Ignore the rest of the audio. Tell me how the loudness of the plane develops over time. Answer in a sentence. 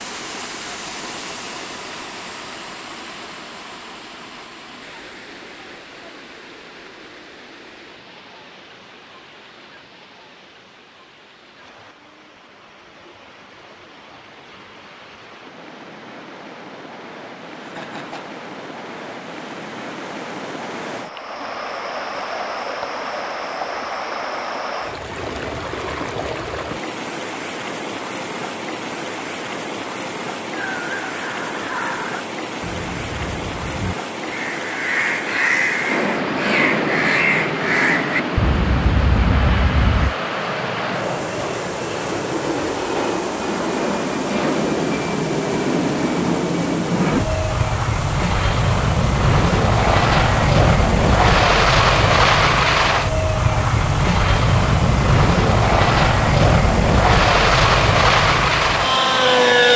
The volume of the plane goes up.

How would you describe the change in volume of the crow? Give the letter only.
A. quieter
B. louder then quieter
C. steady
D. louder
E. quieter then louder
D.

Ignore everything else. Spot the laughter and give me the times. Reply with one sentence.
The laughter can be heard from 17.6 to 18.2 s.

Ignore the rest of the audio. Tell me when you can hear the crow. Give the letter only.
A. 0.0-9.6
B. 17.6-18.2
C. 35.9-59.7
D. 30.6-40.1
D.